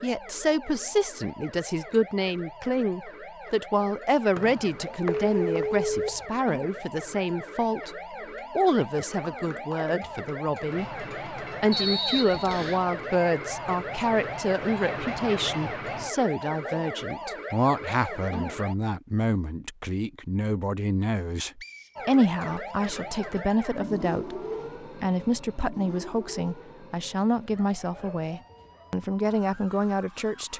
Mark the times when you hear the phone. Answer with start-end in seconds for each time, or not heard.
5.0-6.2.